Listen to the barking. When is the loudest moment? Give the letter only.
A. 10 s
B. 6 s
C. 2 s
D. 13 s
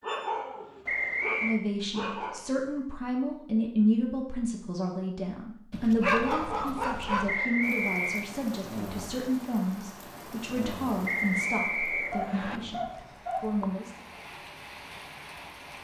B.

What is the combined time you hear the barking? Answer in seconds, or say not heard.
6 s.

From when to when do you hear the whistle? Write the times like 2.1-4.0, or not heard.
0.8-1.6, 7.2-8.2, 11.1-12.6.